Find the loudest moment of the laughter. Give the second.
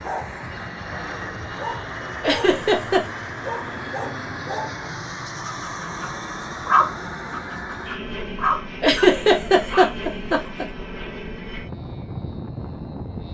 9 s.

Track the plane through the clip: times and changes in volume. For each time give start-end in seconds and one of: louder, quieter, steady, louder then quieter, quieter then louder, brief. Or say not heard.
0.0-13.3 steady.